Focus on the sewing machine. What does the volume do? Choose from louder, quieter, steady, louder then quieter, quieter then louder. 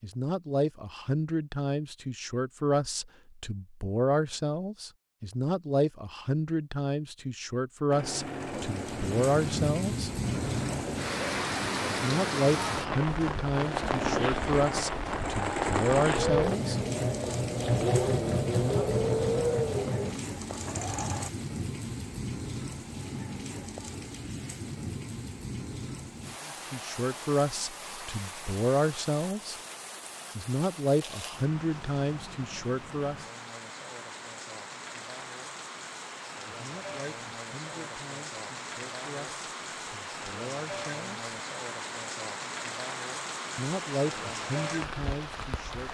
louder.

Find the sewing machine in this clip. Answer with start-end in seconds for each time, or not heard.
7.9-21.3.